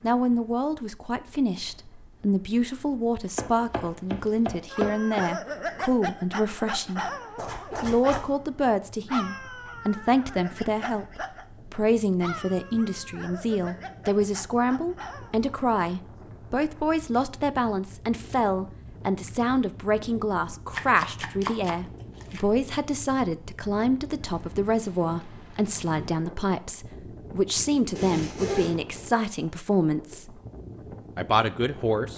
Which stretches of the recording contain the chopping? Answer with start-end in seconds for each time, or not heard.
3.4-5.2, 20.7-22.4.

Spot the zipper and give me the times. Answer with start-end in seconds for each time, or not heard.
7.3-8.3, 27.9-28.8.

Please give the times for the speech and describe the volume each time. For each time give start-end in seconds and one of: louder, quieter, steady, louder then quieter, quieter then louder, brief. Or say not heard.
0.0-7.0 steady
7.8-30.4 steady
31.1-32.1 brief.